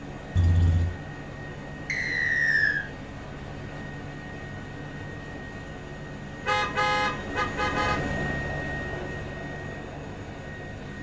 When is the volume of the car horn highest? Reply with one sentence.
The loudest moment of the car horn is at 7 seconds.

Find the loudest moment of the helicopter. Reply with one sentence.
The volume of the helicopter peaks at 8 seconds.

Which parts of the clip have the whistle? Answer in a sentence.
The whistle can be heard from 1.9 to 2.9 s.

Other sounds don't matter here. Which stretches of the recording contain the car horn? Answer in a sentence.
You can hear the car horn from 0.3 to 0.9 s and from 6.5 to 8.0 s.